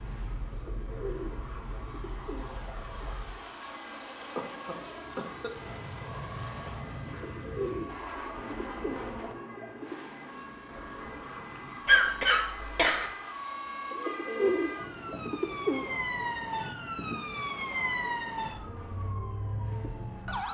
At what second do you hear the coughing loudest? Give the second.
12 s.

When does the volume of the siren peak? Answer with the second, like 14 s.
18 s.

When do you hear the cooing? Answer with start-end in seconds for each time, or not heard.
0.5-3.0, 7.0-10.1, 13.9-15.9.